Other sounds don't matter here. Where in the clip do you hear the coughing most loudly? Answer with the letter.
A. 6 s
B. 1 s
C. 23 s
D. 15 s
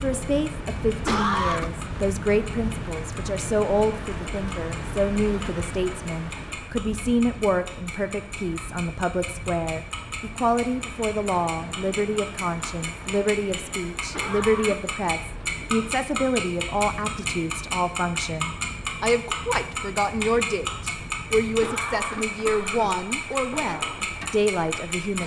B.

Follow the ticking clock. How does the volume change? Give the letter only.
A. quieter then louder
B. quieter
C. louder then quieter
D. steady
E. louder
E.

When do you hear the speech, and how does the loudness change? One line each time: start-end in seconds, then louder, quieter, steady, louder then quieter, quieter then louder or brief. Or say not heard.
0.0-25.2 steady.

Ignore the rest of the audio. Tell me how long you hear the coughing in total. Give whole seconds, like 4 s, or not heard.
3 s.